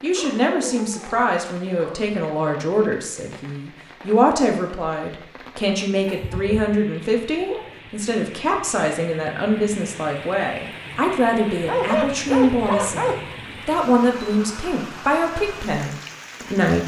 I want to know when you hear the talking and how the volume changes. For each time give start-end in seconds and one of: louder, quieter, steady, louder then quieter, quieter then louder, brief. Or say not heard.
0.0-16.8 steady.